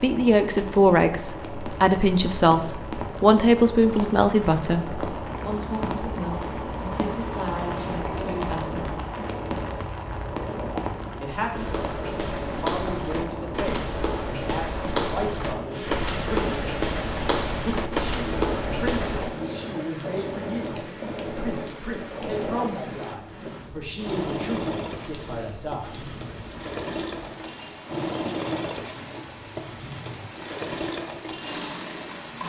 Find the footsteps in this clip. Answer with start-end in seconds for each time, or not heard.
11.5-19.3.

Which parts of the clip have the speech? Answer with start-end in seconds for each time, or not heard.
0.0-9.0, 11.2-16.7, 17.6-26.1.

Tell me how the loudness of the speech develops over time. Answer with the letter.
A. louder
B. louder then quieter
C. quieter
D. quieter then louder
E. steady
C.